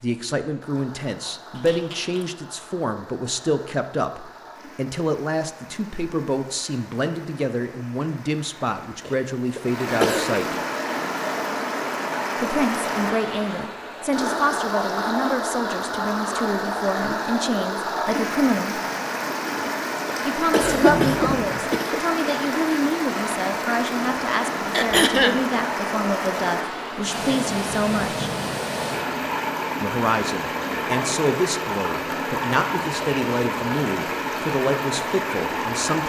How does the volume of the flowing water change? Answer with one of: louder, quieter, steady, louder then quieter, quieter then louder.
louder.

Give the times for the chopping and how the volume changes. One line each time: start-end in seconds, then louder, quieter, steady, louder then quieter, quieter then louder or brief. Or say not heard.
not heard.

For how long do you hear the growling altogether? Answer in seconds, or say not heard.
2 s.